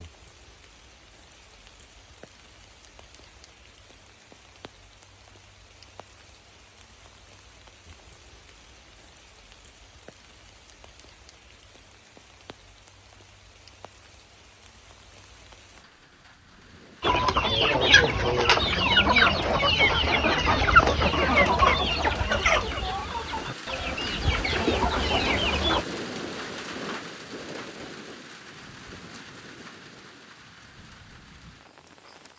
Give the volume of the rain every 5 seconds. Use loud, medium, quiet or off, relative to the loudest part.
quiet, quiet, quiet, quiet, loud, loud, quiet.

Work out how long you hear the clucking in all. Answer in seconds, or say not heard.
9 s.